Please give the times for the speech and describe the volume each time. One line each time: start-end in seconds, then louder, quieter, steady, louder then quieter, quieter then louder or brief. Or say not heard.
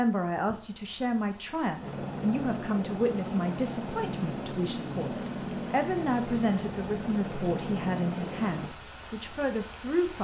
0.0-10.2 steady.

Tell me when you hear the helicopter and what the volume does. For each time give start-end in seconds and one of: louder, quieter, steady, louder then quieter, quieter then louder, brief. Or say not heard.
1.8-8.7 steady.